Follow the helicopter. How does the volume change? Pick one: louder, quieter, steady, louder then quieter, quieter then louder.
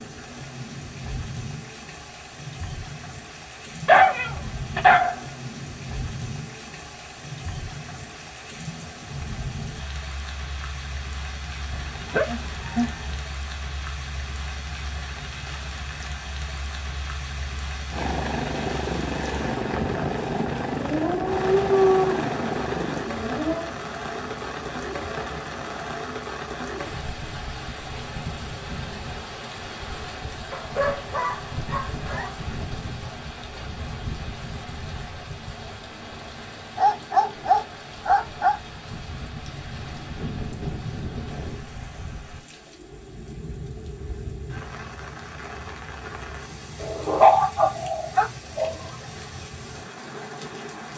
quieter.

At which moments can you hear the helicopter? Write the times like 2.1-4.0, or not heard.
17.9-25.9.